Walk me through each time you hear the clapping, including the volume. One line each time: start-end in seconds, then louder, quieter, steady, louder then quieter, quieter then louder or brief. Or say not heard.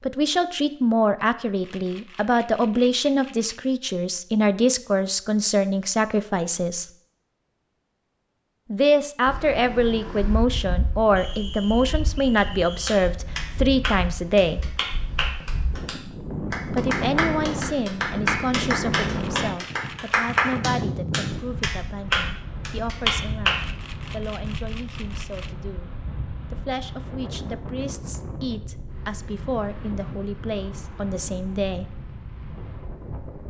12.3-23.6 louder.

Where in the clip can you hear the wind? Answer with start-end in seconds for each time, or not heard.
9.2-33.4.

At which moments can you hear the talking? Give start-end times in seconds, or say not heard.
0.0-6.8, 8.7-14.6, 16.7-25.9, 26.5-31.9.